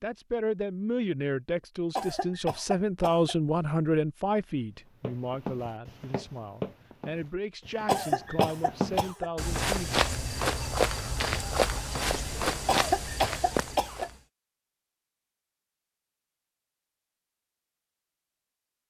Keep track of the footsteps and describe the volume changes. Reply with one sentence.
The volume of the footsteps goes up.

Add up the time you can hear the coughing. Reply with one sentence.
You can hear the coughing for 4 seconds altogether.